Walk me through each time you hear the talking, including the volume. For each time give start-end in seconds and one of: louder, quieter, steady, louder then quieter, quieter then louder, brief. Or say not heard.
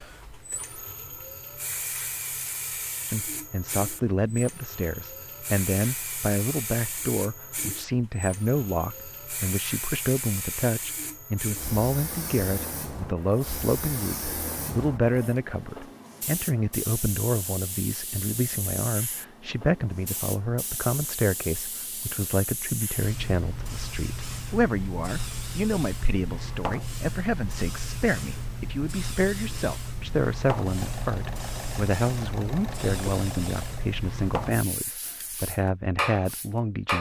3.0-36.9 steady.